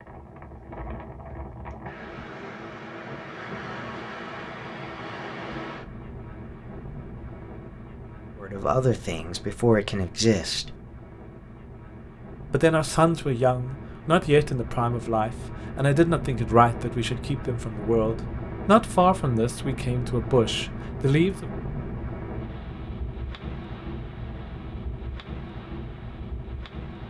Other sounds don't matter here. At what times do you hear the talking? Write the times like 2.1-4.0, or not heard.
8.4-10.8, 12.5-21.4.